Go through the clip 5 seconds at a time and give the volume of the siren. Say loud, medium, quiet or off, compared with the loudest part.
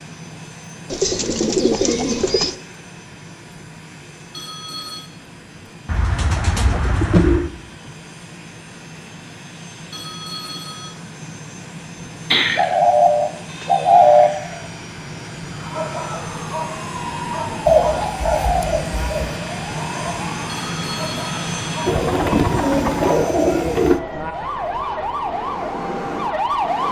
off, off, off, medium, medium, loud.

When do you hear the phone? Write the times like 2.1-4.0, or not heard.
4.3-5.1, 9.9-10.9, 20.4-21.9.